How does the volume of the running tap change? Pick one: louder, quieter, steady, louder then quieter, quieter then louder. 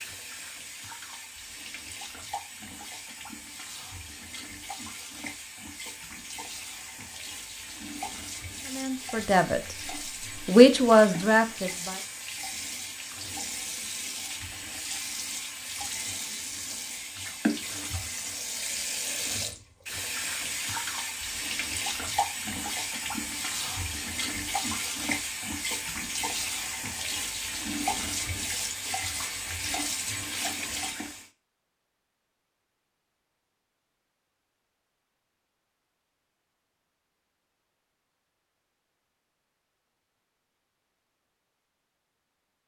louder.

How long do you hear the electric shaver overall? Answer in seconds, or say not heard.
not heard.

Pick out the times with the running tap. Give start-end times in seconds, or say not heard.
0.0-31.3.